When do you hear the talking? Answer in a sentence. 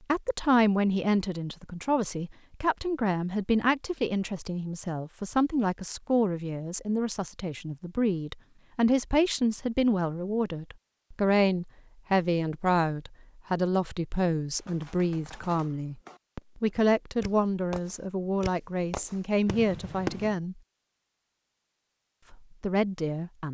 The talking can be heard from 0.1 to 20.6 s and from 22.3 to 23.4 s.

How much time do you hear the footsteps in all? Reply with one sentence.
The footsteps can't be heard in this clip.